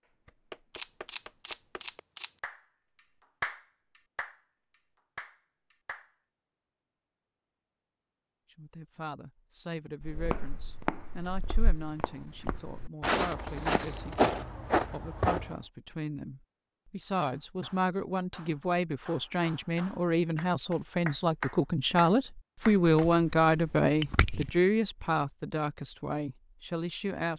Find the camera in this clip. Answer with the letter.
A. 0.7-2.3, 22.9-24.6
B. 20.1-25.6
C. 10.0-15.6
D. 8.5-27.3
A.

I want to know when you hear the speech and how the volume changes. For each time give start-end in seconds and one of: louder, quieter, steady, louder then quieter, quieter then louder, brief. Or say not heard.
8.5-27.3 louder.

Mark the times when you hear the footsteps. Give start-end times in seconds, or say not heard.
10.0-15.6.